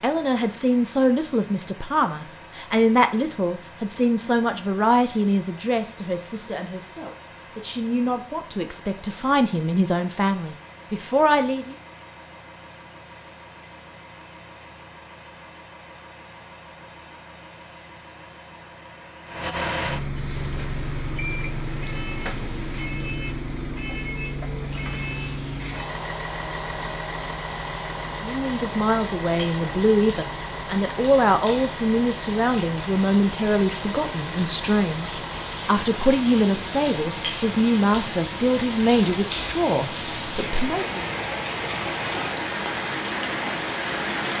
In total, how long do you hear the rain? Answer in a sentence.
You can hear the rain for 24 seconds altogether.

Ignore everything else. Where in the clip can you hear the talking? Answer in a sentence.
You can hear the talking from 0.0 to 11.8 s and from 28.2 to 41.0 s.